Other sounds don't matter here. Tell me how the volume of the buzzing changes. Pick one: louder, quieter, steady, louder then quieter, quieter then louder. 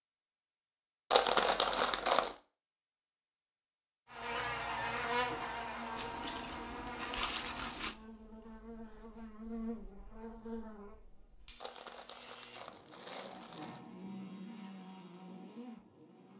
quieter then louder.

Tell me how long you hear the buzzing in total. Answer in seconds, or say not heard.
12 s.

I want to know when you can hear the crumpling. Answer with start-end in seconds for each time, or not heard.
1.1-2.4, 6.0-8.0, 11.6-13.8.